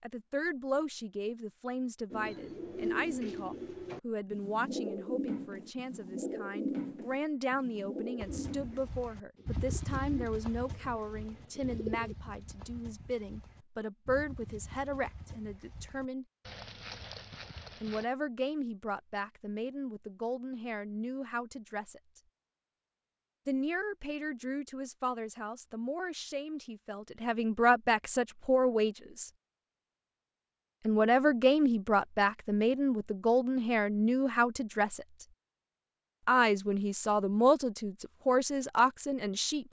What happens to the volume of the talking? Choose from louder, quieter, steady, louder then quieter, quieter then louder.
louder.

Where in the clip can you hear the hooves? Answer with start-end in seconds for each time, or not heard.
8.2-18.1.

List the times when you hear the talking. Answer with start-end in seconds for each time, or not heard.
0.0-16.2, 17.8-22.2, 23.4-29.3, 30.9-35.2, 36.2-39.6.